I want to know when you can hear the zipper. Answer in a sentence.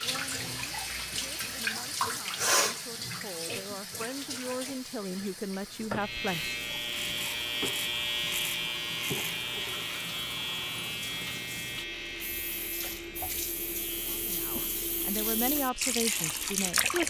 The zipper can't be heard in this clip.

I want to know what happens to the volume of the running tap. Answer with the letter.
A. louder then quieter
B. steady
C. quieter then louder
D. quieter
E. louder
C.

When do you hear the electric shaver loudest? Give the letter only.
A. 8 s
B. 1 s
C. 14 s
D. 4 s
A.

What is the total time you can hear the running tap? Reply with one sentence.
The running tap can be heard for 17 seconds in total.